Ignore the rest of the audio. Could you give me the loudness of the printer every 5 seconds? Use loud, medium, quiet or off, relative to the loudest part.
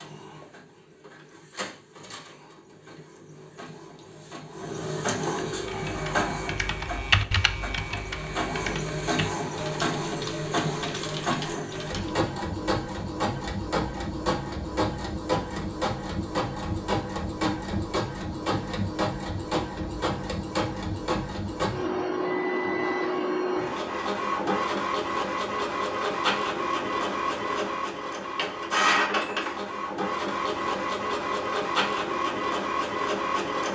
quiet, loud, loud, loud, loud, loud, loud.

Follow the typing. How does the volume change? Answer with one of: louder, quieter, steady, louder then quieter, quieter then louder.
louder then quieter.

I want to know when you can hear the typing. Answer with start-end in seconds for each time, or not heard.
5.5-12.2.